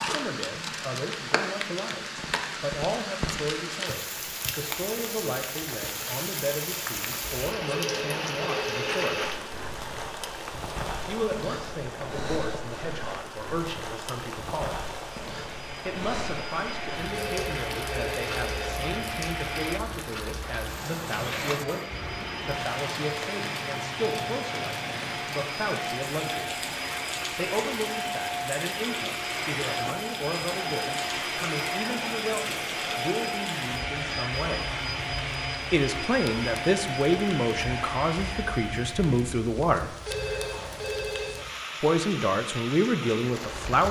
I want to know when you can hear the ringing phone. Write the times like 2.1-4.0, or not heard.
7.7-9.5, 17.1-18.8, 40.0-41.5.